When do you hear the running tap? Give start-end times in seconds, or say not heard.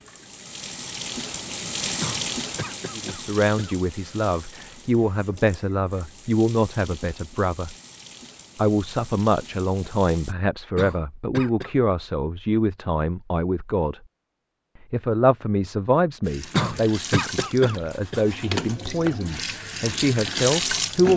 0.0-10.3, 16.2-21.1.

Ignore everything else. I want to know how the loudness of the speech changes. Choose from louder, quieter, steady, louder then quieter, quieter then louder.
steady.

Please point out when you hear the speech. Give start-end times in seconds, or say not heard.
3.0-7.8, 8.6-14.0, 14.9-21.1.